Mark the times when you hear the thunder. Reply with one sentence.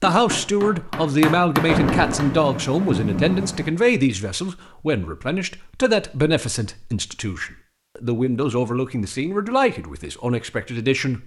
The thunder can be heard from 1.6 to 3.7 s.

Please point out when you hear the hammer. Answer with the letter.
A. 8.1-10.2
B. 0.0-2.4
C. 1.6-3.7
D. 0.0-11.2
B.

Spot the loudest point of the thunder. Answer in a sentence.
The volume of the thunder peaks at 2 seconds.